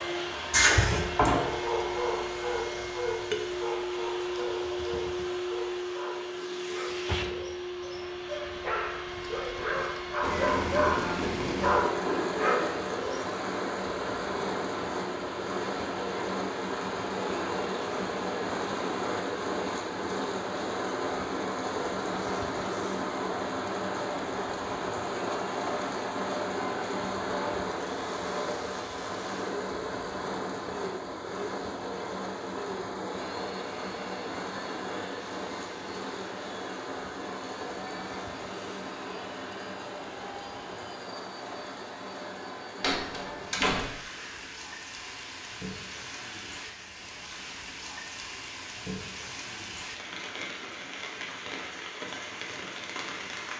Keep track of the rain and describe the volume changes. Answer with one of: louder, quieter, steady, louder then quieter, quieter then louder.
quieter.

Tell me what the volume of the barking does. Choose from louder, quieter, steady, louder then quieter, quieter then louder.
quieter then louder.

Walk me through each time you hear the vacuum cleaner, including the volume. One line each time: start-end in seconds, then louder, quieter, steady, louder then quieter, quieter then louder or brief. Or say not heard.
0.0-46.8 quieter.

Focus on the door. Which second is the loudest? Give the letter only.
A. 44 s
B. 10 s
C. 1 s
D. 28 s
C.